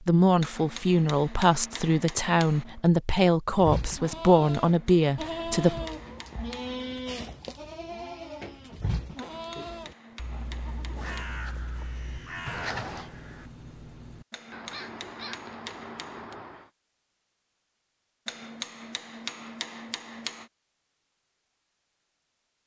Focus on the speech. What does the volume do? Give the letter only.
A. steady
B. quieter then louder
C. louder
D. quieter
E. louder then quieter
A.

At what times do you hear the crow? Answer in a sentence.
The crow can be heard from 10.1 to 16.7 s.